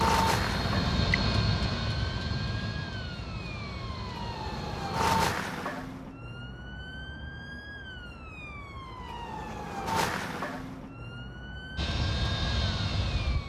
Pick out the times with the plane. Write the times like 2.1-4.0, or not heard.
0.0-5.2, 11.8-13.4.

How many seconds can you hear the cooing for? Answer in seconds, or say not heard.
not heard.